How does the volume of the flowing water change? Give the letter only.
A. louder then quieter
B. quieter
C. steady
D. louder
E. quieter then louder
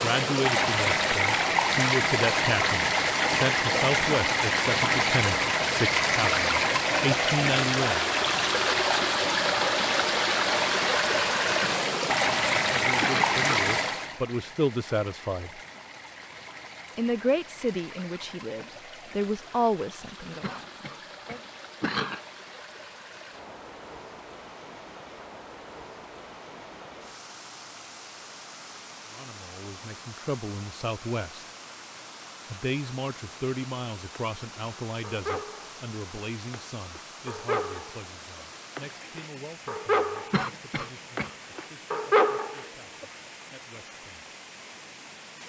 B.